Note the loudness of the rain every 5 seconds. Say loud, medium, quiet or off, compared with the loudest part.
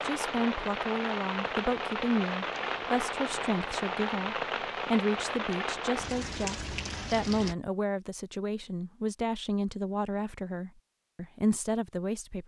loud, loud, off.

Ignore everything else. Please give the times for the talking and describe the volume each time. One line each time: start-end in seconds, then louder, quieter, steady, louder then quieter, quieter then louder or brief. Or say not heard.
0.0-12.4 steady.